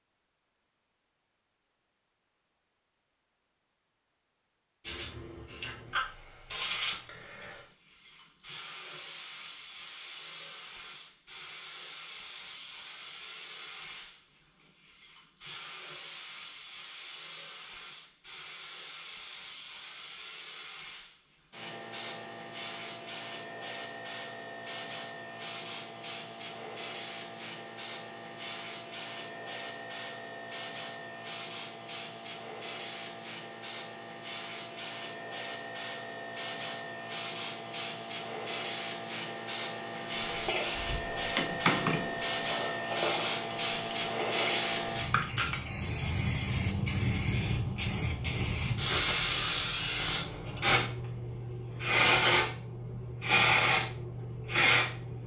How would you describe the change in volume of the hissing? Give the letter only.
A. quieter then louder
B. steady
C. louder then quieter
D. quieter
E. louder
E.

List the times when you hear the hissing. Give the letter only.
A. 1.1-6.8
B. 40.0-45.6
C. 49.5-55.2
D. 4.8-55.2
D.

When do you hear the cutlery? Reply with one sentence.
You can hear the cutlery from 40.0 to 45.6 s.